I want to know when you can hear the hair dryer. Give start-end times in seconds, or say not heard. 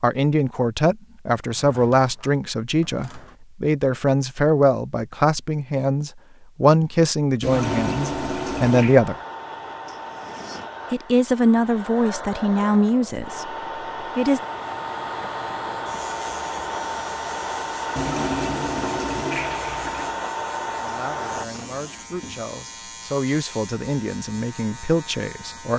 7.5-21.4.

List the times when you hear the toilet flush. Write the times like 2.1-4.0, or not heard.
7.4-9.0, 17.9-20.1.